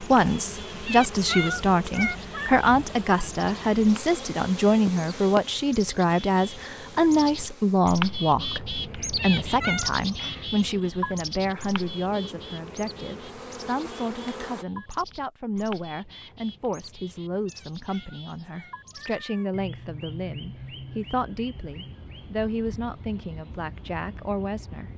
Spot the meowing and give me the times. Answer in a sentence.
The meowing can be heard from 0.8 to 2.5 s, from 9.2 to 9.9 s and from 17.4 to 19.5 s.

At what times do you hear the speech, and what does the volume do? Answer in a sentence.
The speech can be heard from 0.0 to 24.9 s, getting quieter.